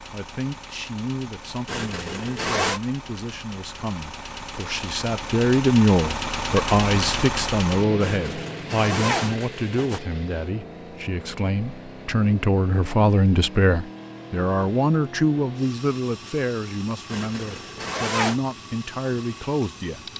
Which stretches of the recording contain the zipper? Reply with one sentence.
You can hear the zipper from 1.6 to 2.8 s, from 8.0 to 10.0 s and from 17.1 to 18.4 s.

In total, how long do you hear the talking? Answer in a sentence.
You can hear the talking for 20 seconds altogether.